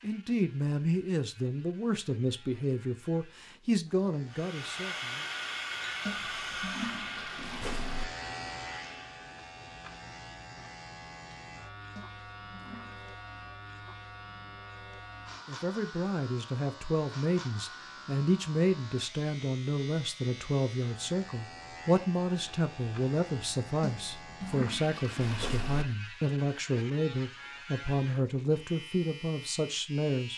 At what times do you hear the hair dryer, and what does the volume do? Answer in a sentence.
You can hear the hair dryer from 4.2 to 9.2 s, getting quieter.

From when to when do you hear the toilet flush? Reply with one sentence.
The toilet flush can be heard from 6.0 to 8.1 s, from 11.9 to 13.2 s and from 23.8 to 25.9 s.